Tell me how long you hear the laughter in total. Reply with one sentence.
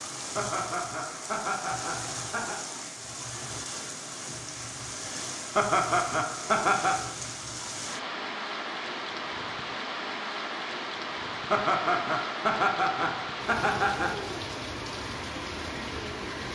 The laughter can be heard for 6 seconds in total.